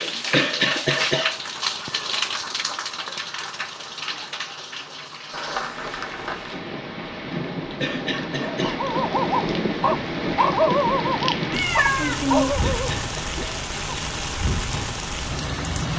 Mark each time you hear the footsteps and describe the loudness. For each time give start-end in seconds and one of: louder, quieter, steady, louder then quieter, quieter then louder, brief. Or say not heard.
not heard.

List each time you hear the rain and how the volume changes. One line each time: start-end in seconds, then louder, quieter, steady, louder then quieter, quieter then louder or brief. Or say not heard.
0.0-15.9 quieter then louder.